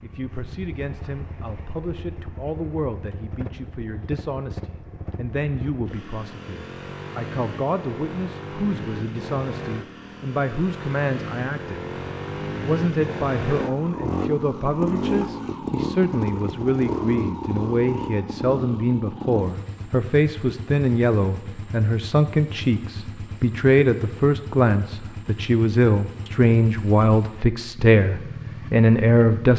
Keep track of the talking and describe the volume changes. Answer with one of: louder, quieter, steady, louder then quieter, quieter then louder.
louder.